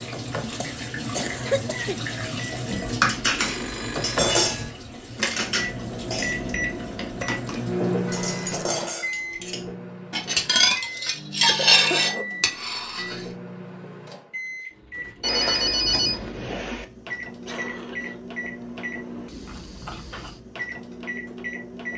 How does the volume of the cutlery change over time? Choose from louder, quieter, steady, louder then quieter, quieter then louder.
quieter then louder.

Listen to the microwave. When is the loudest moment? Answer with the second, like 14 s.
8 s.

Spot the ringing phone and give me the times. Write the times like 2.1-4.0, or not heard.
2.7-4.7, 8.1-8.8, 15.2-16.9.